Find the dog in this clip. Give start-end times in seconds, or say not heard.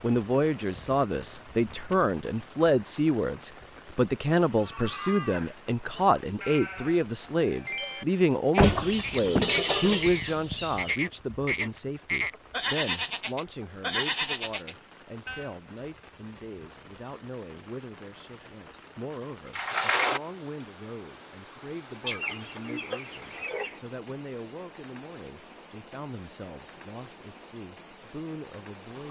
not heard.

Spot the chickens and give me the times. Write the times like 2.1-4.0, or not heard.
8.6-10.9, 22.0-23.8.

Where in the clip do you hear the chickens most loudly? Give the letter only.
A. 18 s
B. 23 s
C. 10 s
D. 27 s
C.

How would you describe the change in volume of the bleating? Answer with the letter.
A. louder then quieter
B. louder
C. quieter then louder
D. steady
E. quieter
B.